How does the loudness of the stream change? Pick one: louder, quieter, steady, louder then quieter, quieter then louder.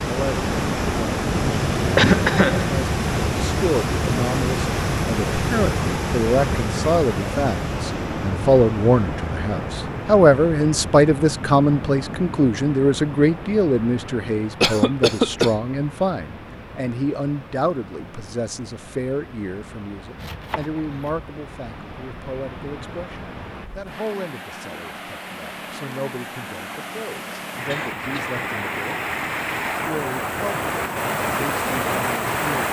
quieter then louder.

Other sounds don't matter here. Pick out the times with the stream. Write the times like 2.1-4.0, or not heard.
0.0-32.6.